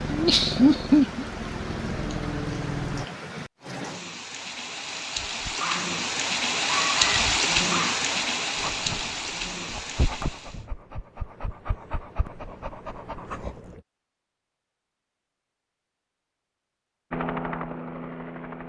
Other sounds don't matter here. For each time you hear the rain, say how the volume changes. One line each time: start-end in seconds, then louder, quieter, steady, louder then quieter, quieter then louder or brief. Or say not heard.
0.0-10.7 louder then quieter.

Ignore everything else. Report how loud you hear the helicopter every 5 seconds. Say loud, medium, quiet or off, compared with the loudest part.
loud, off, off, loud.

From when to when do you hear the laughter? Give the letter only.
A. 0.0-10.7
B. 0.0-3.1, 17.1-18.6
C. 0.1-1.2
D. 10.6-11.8
C.